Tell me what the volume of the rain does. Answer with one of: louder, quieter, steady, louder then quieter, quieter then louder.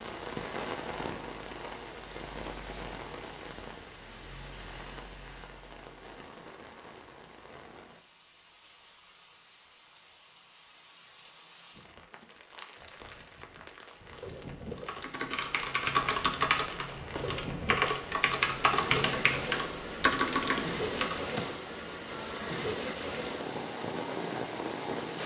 quieter then louder.